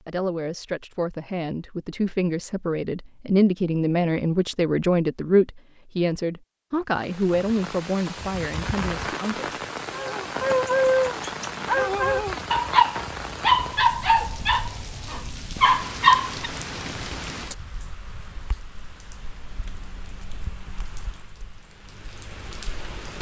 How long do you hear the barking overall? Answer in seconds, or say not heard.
7 s.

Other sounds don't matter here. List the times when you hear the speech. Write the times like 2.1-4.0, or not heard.
0.1-9.6.